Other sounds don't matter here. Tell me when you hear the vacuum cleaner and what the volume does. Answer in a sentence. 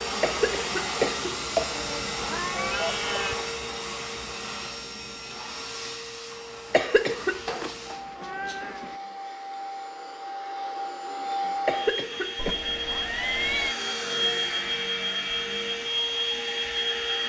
You can hear the vacuum cleaner from 0.0 to 17.2 s, getting quieter then louder.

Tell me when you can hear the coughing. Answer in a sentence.
The coughing can be heard from 0.2 to 1.7 s, from 6.7 to 7.3 s and from 11.7 to 12.5 s.